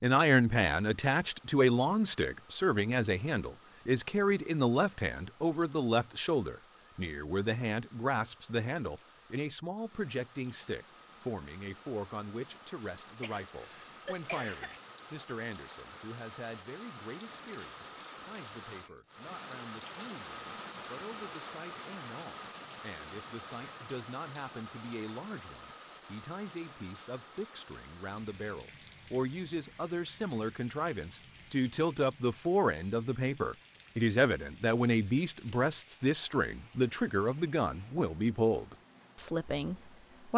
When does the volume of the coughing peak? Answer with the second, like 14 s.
14 s.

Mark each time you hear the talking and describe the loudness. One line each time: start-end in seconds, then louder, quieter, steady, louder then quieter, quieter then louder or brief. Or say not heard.
0.0-40.3 quieter then louder.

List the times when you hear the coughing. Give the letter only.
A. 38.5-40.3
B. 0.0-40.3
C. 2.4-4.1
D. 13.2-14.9
D.